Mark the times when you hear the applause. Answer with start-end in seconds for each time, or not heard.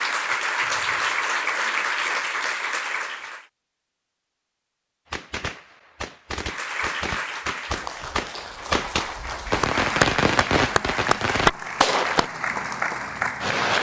0.0-3.5, 6.3-13.7.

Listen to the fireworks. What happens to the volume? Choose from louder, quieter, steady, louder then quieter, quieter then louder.
louder.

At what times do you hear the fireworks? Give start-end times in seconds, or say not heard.
5.1-12.3.